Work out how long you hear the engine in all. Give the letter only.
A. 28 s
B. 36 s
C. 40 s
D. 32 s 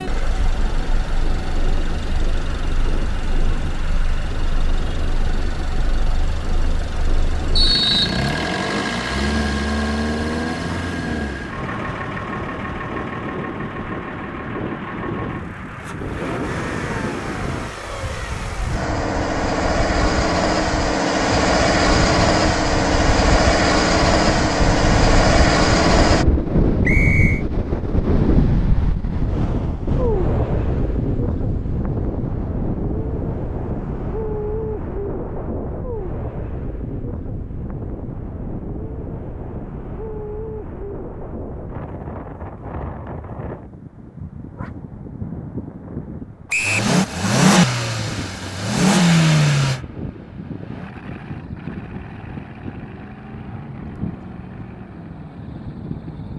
B.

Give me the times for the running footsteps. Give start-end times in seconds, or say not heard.
not heard.